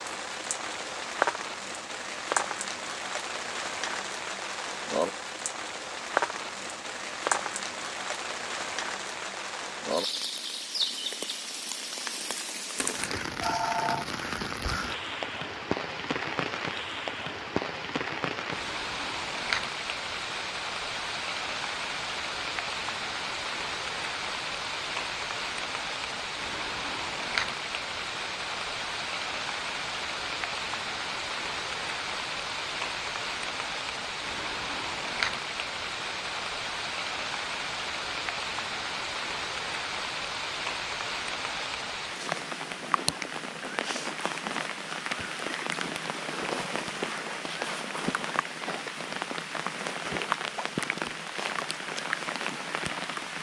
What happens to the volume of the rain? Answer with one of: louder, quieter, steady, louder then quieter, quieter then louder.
steady.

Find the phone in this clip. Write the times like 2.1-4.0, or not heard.
12.8-14.1.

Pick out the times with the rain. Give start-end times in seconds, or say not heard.
0.0-53.3.